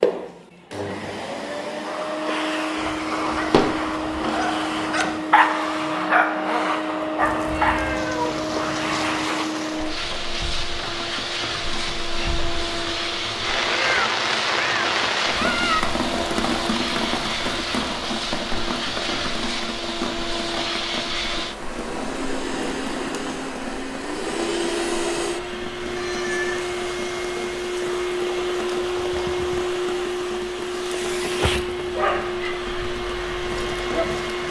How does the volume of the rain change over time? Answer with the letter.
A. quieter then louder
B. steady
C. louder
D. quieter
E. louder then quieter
E.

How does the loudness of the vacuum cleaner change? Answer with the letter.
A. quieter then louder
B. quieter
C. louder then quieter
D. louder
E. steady
E.